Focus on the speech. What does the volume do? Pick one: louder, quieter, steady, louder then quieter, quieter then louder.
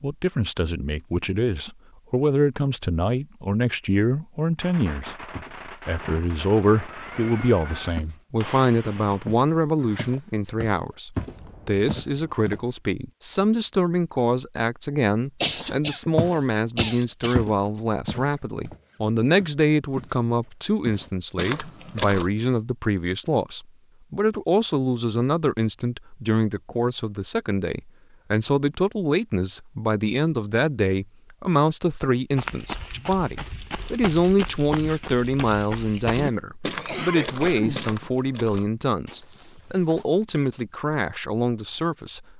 steady.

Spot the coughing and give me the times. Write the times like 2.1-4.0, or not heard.
15.4-17.4, 36.2-38.0.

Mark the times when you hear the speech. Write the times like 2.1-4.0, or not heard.
0.0-42.2.